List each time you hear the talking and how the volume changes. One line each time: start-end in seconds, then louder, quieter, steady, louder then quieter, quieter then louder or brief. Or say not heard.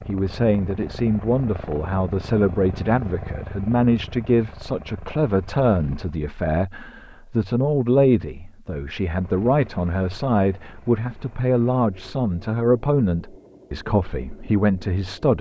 0.1-15.3 steady.